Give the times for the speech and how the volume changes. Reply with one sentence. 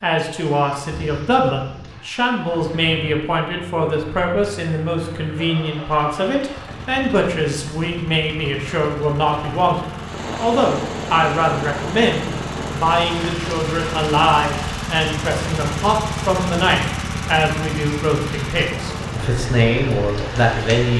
You can hear the speech from 0.0 to 20.9 s, at a steady volume.